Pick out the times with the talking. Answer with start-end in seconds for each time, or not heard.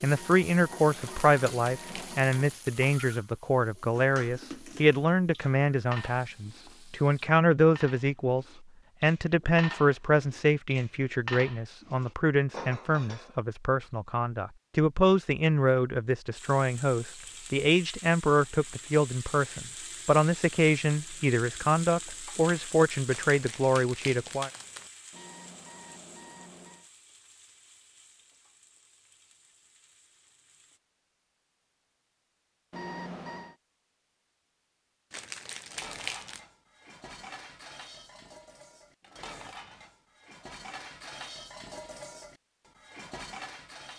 0.0-24.5.